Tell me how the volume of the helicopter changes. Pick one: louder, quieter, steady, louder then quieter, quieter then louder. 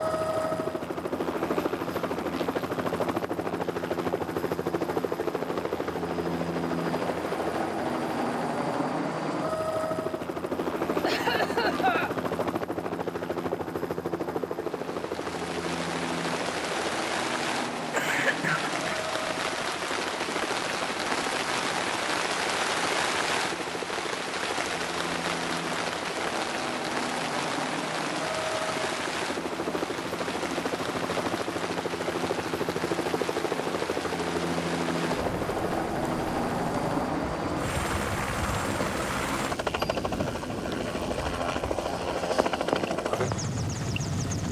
quieter then louder.